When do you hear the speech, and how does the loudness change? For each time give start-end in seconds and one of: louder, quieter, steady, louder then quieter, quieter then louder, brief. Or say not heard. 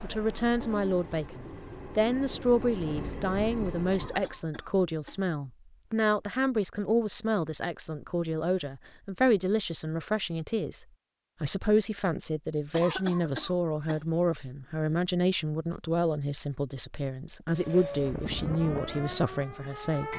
0.0-20.1 steady.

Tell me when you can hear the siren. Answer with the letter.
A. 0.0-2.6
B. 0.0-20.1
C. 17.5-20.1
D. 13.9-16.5
C.